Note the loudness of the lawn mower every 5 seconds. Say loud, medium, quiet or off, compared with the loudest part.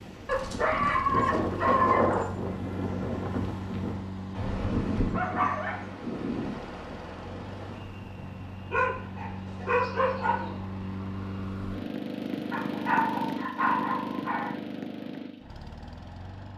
medium, medium, loud, medium.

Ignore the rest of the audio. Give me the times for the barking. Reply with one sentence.
You can hear the barking from 0.2 to 2.3 s, from 5.0 to 5.8 s, from 8.7 to 10.6 s and from 12.5 to 14.5 s.